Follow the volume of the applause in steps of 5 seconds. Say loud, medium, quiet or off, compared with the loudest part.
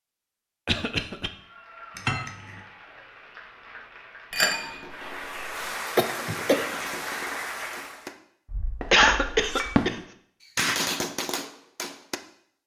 quiet, loud, off.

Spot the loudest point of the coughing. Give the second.
9 s.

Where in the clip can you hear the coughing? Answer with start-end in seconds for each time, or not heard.
0.7-1.3, 6.0-6.7, 8.9-9.9.